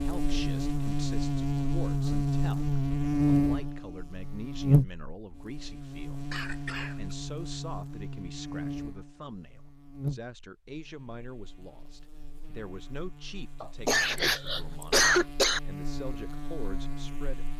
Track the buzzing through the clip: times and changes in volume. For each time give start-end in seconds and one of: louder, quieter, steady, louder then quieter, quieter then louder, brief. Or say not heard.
0.0-17.5 quieter then louder.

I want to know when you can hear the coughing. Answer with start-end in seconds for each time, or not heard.
6.3-7.2, 13.6-15.6.